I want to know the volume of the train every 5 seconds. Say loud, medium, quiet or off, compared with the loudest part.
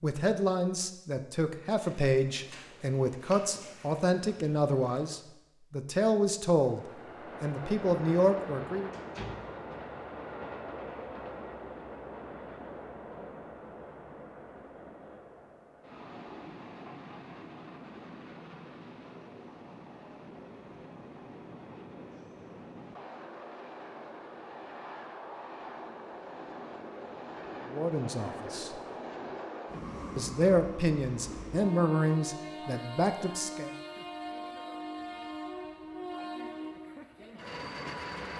off, loud, loud, medium, medium, loud, loud, loud.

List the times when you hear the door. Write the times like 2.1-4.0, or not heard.
8.9-9.8.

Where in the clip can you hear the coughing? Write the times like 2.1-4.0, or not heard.
not heard.